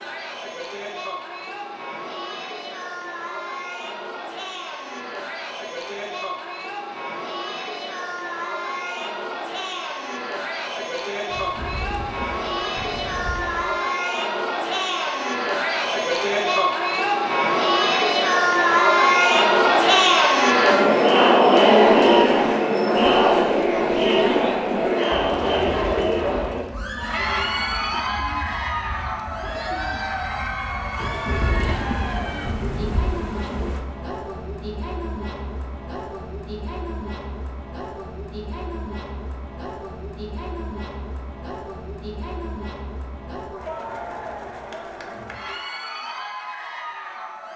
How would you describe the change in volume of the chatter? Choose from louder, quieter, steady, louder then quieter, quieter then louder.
louder then quieter.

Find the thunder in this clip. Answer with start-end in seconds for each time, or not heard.
11.2-13.8, 30.9-33.8.